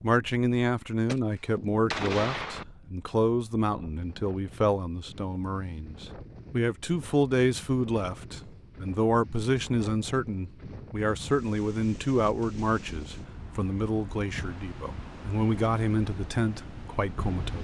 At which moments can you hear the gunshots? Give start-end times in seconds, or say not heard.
1.0-2.6.